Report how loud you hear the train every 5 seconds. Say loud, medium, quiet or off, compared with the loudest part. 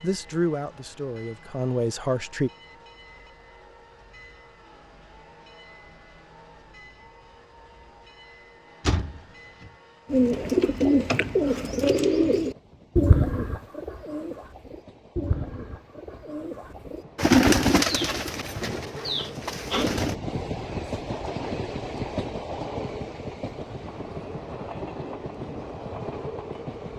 quiet, quiet, quiet, medium, loud, loud.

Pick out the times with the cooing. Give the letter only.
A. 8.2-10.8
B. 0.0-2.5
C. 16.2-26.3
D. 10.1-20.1
D.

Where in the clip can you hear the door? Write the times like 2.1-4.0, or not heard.
8.8-9.7.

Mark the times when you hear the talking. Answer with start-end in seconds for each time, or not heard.
0.0-2.5.